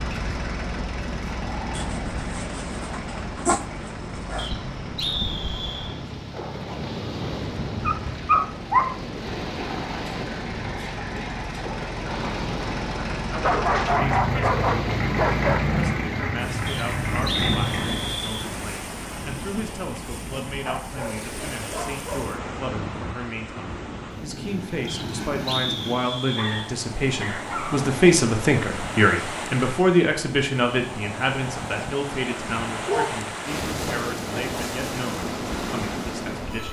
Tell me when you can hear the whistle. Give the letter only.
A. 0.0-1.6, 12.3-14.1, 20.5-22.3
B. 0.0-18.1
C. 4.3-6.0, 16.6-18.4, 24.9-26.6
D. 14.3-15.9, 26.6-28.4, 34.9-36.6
C.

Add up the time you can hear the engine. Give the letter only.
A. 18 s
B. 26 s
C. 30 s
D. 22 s
A.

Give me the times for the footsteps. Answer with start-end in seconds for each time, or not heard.
not heard.